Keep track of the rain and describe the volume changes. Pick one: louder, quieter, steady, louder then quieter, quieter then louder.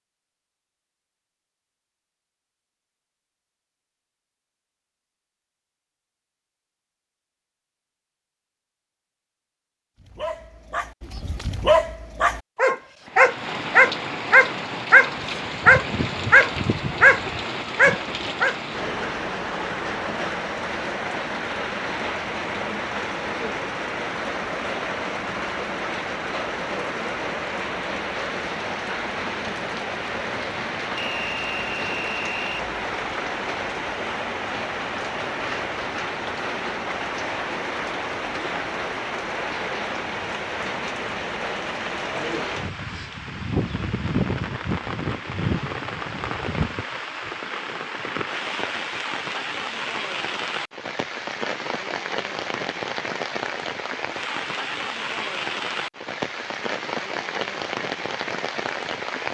steady.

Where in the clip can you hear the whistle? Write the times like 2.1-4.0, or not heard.
30.9-32.6.